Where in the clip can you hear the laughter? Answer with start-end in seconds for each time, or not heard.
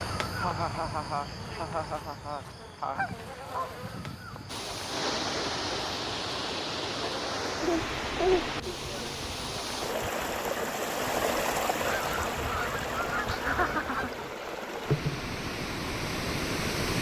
0.3-3.0, 7.6-8.6, 13.2-14.2.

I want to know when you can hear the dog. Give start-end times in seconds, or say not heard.
not heard.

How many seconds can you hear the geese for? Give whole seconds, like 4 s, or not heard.
4 s.